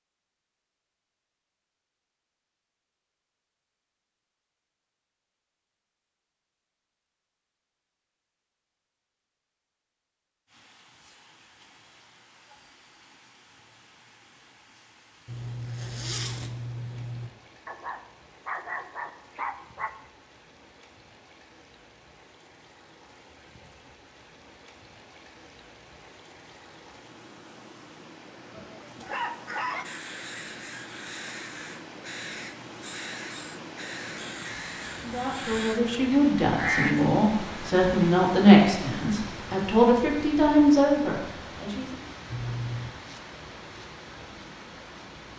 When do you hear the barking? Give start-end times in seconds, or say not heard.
17.6-19.9, 28.5-29.9.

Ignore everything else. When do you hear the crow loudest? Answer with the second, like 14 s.
37 s.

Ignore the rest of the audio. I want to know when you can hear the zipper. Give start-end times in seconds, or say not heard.
15.2-17.3, 42.3-43.0.